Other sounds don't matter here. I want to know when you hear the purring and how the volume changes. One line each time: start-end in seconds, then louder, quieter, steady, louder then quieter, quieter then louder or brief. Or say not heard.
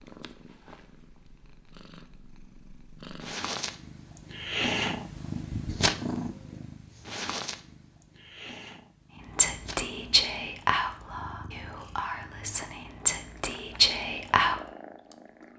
0.0-15.5 louder then quieter.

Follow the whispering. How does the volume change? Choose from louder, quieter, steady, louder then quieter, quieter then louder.
quieter then louder.